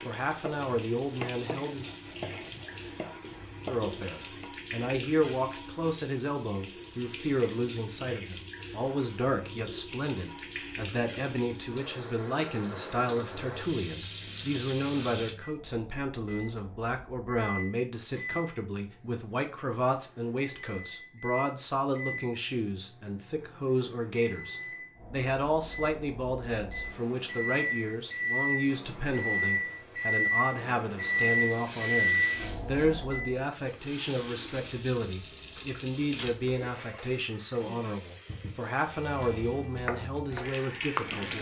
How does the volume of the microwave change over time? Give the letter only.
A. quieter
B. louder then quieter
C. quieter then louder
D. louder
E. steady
D.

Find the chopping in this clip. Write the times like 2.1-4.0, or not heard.
0.0-4.5, 38.9-41.3.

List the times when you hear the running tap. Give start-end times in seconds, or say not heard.
0.0-15.3, 31.1-41.3.